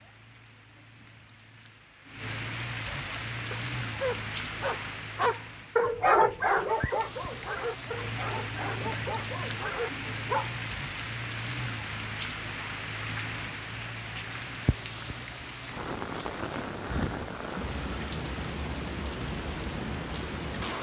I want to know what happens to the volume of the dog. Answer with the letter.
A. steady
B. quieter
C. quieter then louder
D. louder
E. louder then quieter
E.